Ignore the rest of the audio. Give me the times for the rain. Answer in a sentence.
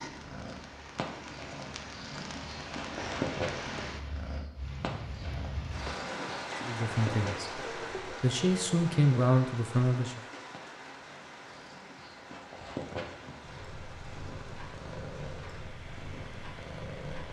You can hear the rain from 0.0 to 17.2 s.